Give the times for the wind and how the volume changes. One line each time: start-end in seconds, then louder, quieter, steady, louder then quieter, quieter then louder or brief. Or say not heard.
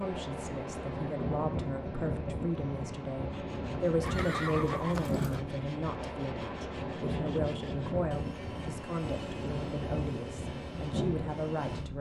0.0-11.9 steady.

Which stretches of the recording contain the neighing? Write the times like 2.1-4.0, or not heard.
4.0-5.5.